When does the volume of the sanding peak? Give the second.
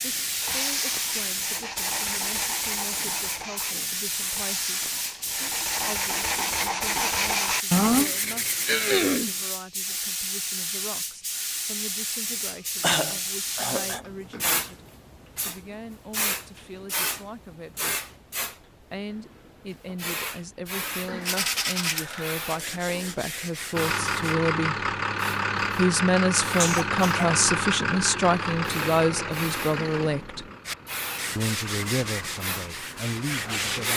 8 s.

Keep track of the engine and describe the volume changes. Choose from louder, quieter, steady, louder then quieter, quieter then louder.
quieter.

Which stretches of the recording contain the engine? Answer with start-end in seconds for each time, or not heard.
23.7-33.9.